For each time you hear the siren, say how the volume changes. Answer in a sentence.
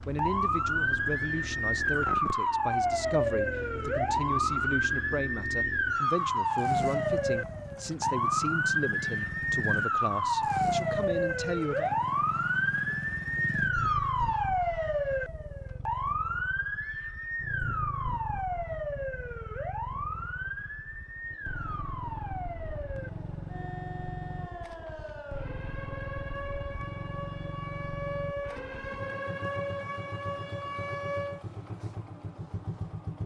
You can hear the siren from 0.0 to 31.4 s, getting quieter.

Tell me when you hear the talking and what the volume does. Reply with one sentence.
You can hear the talking from 0.1 to 11.9 s, at a steady volume.